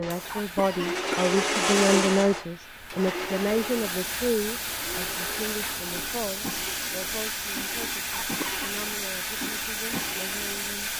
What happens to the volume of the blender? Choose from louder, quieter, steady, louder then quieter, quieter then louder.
quieter.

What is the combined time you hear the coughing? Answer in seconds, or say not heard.
2 s.